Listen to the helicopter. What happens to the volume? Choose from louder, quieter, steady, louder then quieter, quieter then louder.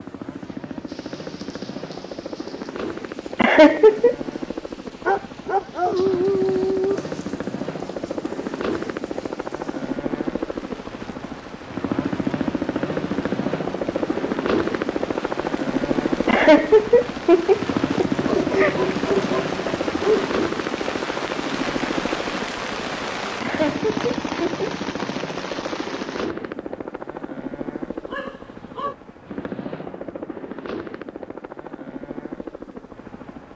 louder then quieter.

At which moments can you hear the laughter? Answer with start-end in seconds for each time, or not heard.
3.4-4.2, 16.2-18.8, 23.4-24.6.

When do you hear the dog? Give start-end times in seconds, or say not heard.
5.0-7.0, 18.1-20.4, 28.1-28.9.